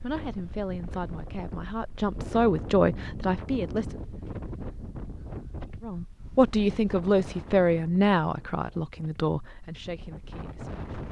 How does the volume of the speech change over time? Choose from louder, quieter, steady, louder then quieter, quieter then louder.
louder then quieter.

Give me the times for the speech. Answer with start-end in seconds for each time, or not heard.
0.0-4.0, 5.8-10.8.